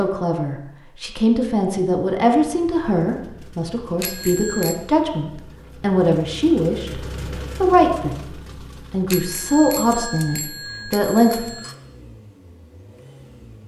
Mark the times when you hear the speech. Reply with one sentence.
You can hear the speech from 0.0 to 11.5 s.